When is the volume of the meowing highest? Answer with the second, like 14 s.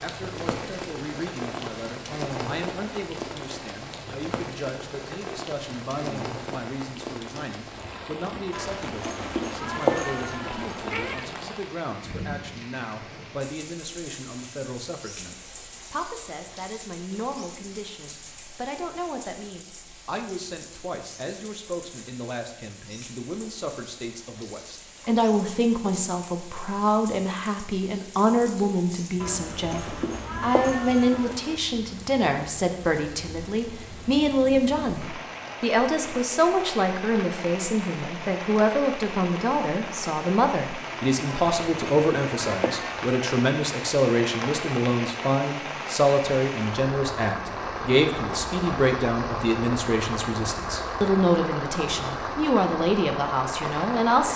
10 s.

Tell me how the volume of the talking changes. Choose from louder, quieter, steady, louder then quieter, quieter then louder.
louder.